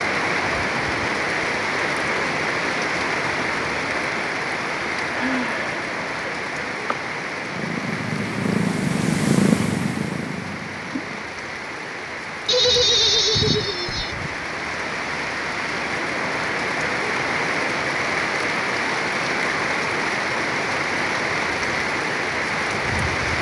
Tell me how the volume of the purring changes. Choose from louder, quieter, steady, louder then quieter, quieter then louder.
louder then quieter.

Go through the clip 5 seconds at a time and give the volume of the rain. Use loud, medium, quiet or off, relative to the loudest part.
loud, medium, medium, loud, loud.